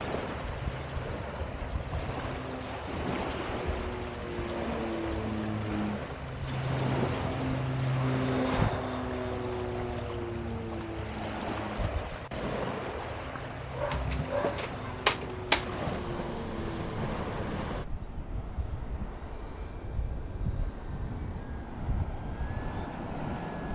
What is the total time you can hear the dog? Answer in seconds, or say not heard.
2 s.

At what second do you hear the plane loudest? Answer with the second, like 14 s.
8 s.